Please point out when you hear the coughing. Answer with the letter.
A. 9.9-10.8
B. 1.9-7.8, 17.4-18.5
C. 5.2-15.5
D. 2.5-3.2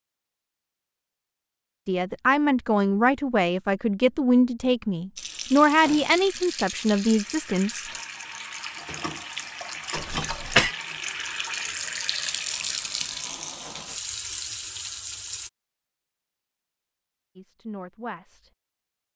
A.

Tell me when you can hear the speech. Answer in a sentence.
The speech can be heard from 1.9 to 7.8 s and from 17.4 to 18.5 s.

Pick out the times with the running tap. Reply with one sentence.
You can hear the running tap from 5.2 to 15.5 s.